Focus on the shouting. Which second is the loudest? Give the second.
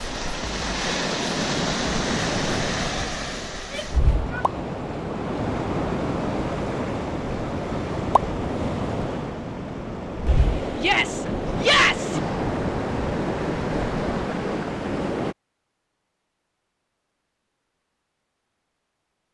12 s.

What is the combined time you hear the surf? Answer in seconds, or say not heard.
15 s.